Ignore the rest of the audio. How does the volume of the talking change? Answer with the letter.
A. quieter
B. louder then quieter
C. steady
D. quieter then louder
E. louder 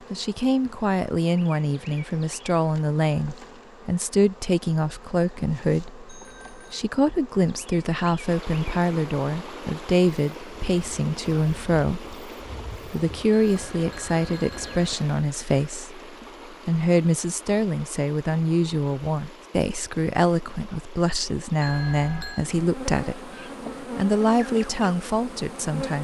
C.